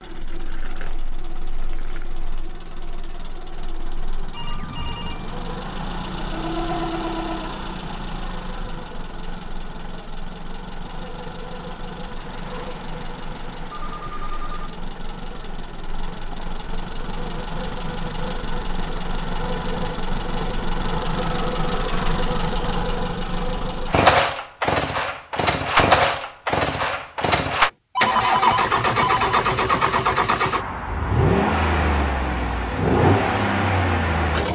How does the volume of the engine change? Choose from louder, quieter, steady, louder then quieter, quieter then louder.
louder.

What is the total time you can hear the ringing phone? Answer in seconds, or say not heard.
5 s.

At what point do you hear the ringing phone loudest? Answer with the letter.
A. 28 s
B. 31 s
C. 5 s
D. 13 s
A.